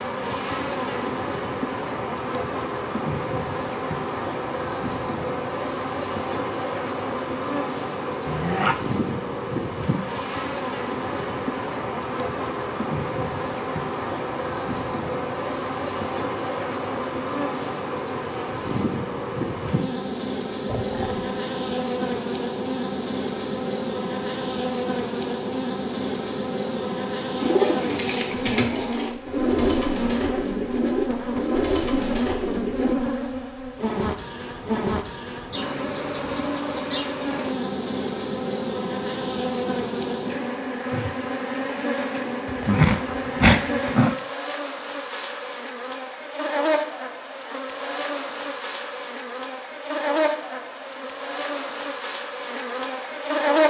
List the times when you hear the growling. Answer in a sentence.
The growling can be heard from 8.2 to 8.9 s, from 20.6 to 21.3 s and from 42.5 to 44.1 s.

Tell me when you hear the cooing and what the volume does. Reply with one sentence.
You can hear the cooing from 27.4 to 33.0 s, at a steady volume.